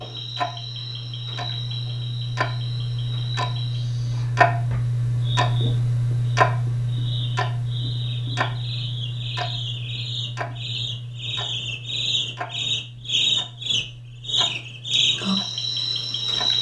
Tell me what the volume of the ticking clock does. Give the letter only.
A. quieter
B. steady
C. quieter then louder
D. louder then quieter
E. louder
D.